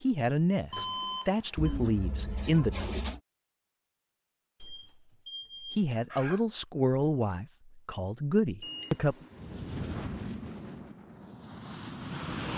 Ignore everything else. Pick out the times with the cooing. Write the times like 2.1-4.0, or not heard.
1.6-3.2.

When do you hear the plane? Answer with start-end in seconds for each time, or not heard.
9.3-12.5.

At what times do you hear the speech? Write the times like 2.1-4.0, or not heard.
0.0-3.0, 5.7-9.2.